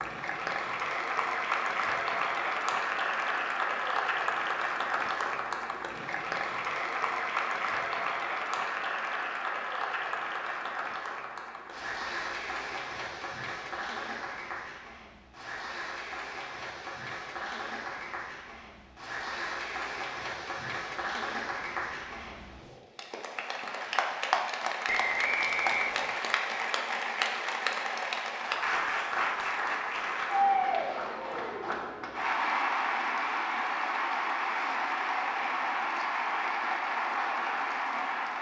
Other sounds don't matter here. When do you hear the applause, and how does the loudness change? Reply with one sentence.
The applause can be heard from 0.0 to 38.3 s, getting quieter then louder.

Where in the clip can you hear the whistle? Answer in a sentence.
The whistle can be heard from 24.9 to 26.3 s.